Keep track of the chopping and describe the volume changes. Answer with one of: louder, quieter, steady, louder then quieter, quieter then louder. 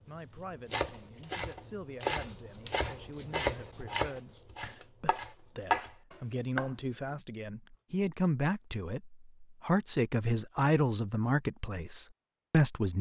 louder.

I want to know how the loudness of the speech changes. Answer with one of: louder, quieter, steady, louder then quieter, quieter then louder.
louder.